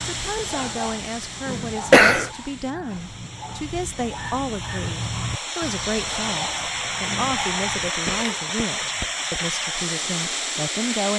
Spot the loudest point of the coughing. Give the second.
2 s.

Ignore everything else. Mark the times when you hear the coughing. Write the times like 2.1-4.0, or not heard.
1.5-2.3, 8.1-9.4.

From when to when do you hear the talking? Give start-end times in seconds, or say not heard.
0.0-11.1.